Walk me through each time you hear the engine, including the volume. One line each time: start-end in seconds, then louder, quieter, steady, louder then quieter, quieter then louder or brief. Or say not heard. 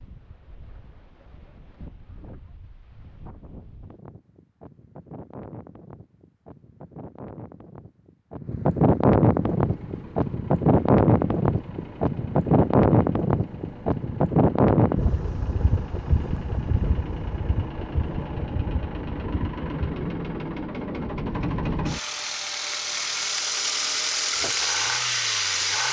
9.3-25.8 louder.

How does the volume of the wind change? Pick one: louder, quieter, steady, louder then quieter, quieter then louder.
louder then quieter.